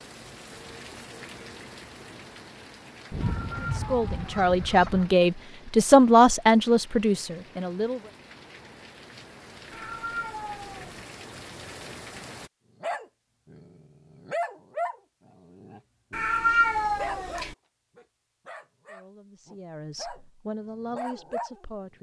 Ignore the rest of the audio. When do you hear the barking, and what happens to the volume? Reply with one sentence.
The barking can be heard from 12.8 to 21.6 s, getting quieter then louder.